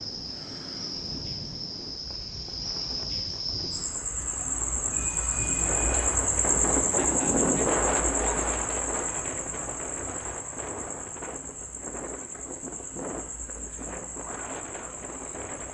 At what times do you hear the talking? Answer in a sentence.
The talking can't be heard in this clip.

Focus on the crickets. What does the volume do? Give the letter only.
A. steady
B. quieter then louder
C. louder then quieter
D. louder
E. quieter
C.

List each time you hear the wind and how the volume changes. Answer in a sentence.
The wind can be heard from 0.0 to 15.7 s, getting louder then quieter.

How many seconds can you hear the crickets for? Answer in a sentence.
You can hear the crickets for 16 seconds altogether.